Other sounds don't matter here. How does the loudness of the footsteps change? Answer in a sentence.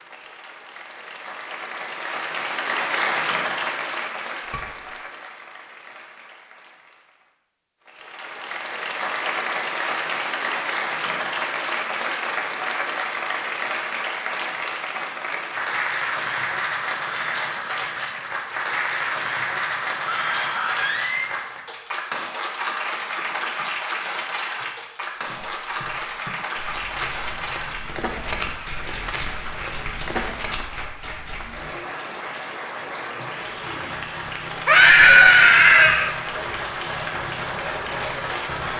The loudness of the footsteps goes up.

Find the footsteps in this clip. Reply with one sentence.
You can hear the footsteps from 25.2 to 30.6 s.